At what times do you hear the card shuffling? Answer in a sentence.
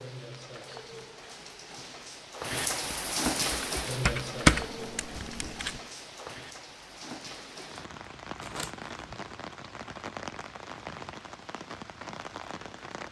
You can hear the card shuffling from 8.4 to 9.2 s.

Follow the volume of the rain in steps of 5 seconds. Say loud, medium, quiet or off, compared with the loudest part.
loud, medium, medium.